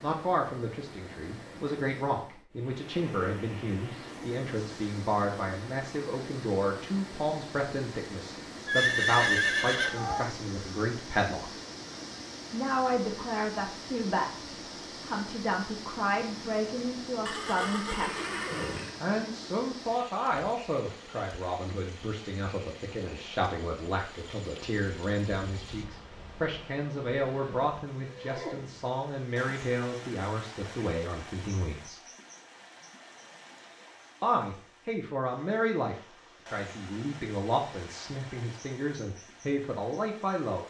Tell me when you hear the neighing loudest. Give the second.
9 s.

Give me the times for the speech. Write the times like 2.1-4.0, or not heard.
0.0-11.5, 12.5-14.3, 15.1-32.0, 34.2-40.6.